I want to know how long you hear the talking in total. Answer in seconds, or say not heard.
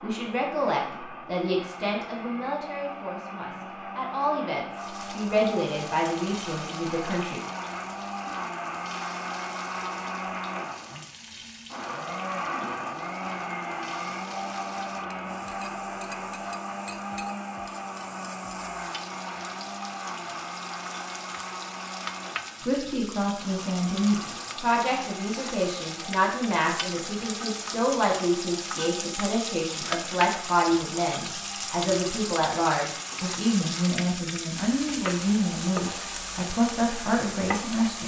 23 s.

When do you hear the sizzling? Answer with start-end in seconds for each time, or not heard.
4.8-38.0.